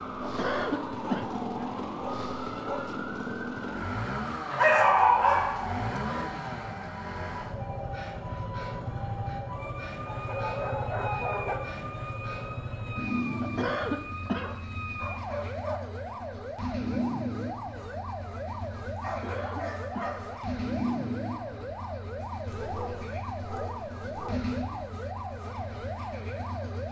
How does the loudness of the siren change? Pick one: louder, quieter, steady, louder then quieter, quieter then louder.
steady.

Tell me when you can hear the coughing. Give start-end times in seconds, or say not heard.
0.2-1.2, 13.4-14.5, 19.1-20.1.